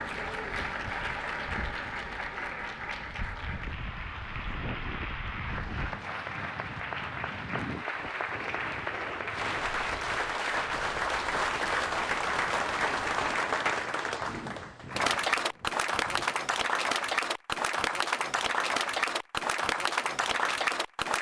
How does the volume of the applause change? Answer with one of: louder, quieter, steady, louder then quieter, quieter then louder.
louder.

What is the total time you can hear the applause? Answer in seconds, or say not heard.
21 s.